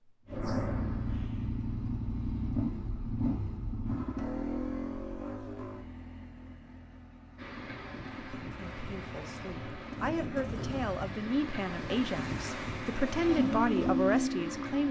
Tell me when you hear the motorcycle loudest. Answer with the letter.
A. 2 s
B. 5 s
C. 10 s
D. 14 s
D.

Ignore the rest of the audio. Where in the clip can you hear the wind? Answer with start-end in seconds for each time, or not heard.
7.3-14.8.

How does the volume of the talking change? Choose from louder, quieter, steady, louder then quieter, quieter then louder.
louder.